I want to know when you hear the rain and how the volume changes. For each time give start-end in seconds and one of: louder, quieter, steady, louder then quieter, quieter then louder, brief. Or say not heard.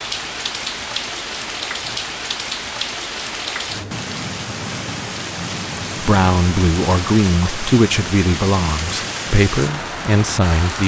0.0-10.8 steady.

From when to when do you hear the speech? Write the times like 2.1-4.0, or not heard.
6.0-10.8.